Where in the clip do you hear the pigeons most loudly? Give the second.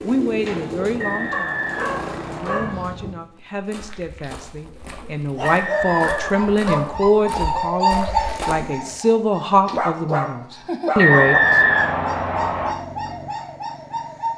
8 s.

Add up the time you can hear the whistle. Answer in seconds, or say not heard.
5 s.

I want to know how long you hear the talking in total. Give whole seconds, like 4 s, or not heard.
12 s.